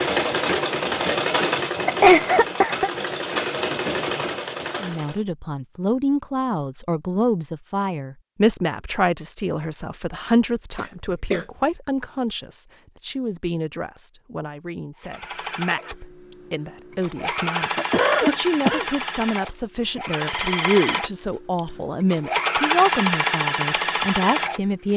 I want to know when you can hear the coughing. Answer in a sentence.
You can hear the coughing from 1.9 to 2.9 s, from 10.8 to 11.4 s and from 17.8 to 18.9 s.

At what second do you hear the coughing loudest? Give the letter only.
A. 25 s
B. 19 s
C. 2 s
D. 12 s
C.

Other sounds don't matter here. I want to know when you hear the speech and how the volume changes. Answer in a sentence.
You can hear the speech from 4.8 to 24.9 s, getting quieter then louder.